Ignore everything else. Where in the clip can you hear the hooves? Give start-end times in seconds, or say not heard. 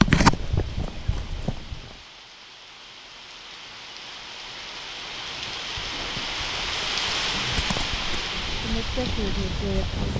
0.0-1.9, 5.2-10.1.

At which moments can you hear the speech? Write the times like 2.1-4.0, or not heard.
8.6-10.1.